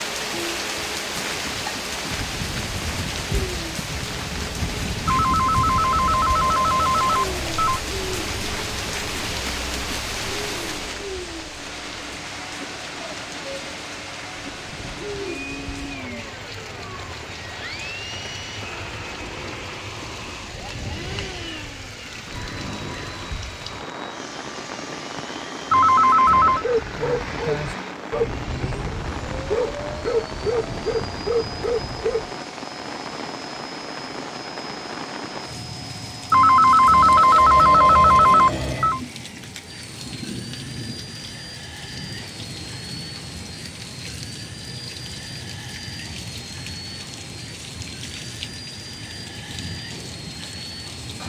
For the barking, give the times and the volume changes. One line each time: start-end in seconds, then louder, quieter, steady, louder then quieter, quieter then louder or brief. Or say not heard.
26.4-32.3 steady.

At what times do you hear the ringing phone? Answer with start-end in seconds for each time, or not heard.
5.0-7.8, 25.7-26.6, 36.3-39.0.